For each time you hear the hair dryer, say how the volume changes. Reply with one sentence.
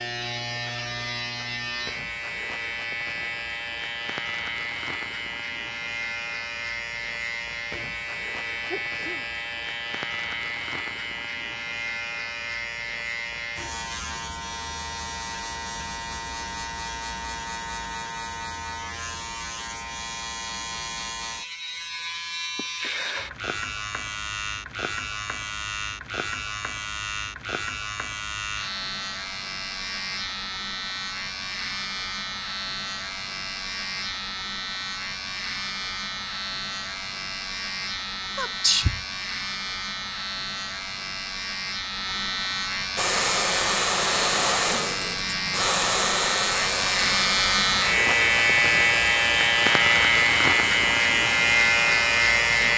The hair dryer can be heard from 43.0 to 52.7 s, getting quieter.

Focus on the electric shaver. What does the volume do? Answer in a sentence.
The loudness of the electric shaver goes up.